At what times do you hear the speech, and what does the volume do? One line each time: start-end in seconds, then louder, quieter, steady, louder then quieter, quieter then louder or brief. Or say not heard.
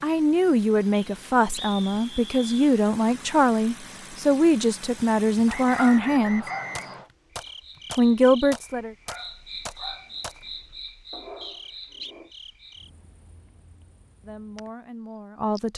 0.0-6.5 steady
8.0-8.9 brief
14.2-15.7 brief.